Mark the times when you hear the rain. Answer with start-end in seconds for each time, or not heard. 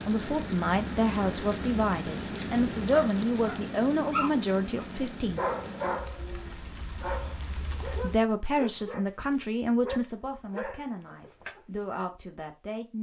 0.0-8.2.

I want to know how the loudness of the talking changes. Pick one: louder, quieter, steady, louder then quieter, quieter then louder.
quieter.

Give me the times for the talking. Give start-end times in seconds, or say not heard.
0.0-5.4, 8.0-12.9.